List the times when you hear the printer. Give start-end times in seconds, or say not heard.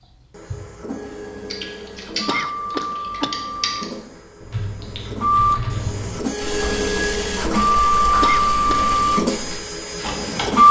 0.0-10.6.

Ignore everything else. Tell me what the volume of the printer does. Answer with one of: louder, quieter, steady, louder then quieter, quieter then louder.
louder.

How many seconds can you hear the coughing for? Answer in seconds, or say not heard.
2 s.